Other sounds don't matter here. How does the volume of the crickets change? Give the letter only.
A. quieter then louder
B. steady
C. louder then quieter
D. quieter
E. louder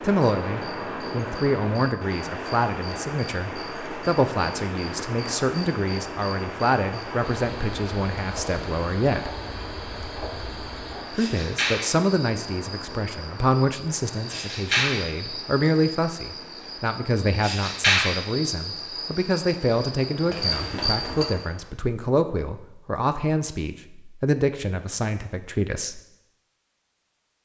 E.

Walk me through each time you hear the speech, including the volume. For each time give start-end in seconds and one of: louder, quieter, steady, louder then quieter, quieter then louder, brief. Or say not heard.
0.0-9.3 steady
11.1-26.0 steady.